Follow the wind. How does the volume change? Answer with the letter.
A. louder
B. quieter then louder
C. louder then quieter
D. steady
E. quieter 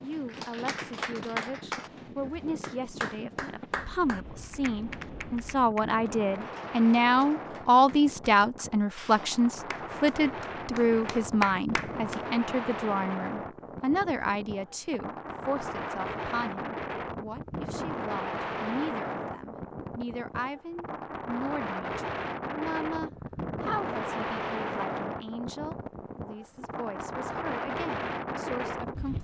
A.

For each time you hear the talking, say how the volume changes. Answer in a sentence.
The talking can be heard from 0.0 to 29.1 s, getting louder then quieter.